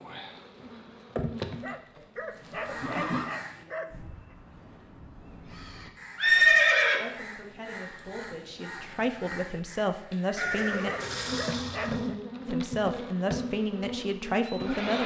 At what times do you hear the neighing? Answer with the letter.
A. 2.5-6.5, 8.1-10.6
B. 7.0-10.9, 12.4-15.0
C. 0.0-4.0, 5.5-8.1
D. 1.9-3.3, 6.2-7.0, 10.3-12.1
D.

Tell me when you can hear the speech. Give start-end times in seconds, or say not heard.
7.0-10.9, 12.4-15.0.